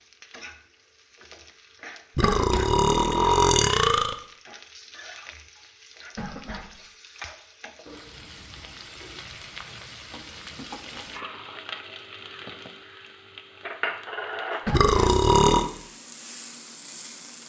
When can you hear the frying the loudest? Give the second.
14 s.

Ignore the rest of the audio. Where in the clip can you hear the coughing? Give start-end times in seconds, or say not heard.
2.2-2.8, 6.2-6.8, 14.7-15.2.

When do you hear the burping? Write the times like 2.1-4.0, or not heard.
2.1-4.2, 14.7-15.7.